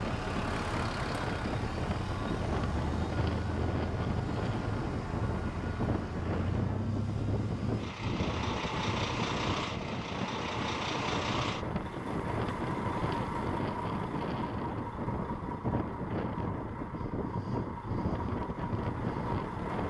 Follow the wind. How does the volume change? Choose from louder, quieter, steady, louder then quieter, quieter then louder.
steady.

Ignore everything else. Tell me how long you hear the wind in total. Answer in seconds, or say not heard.
20 s.